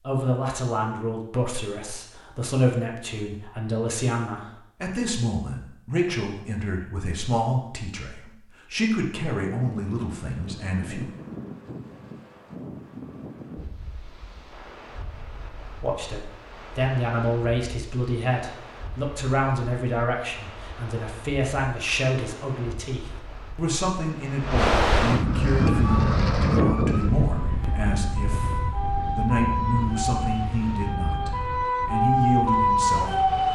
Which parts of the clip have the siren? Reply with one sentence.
You can hear the siren from 25.6 to 33.4 s.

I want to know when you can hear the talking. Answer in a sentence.
The talking can be heard from 0.1 to 11.1 s and from 15.8 to 33.2 s.